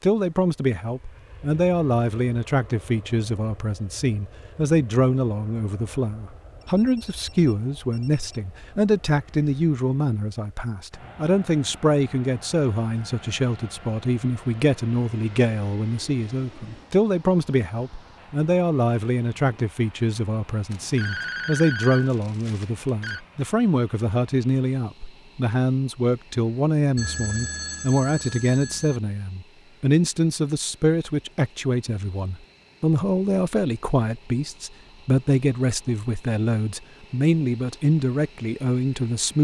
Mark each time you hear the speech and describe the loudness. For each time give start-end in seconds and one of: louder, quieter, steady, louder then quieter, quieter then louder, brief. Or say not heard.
0.0-39.3 steady.